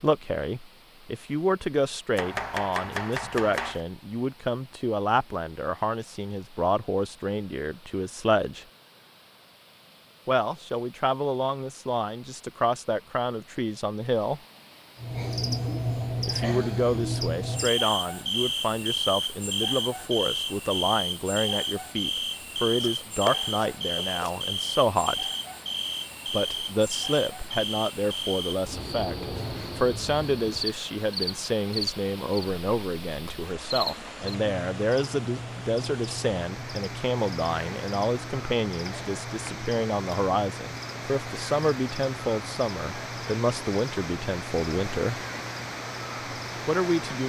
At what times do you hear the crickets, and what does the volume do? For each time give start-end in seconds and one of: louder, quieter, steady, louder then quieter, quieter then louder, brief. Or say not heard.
14.9-47.0 quieter.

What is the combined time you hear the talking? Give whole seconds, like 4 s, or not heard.
41 s.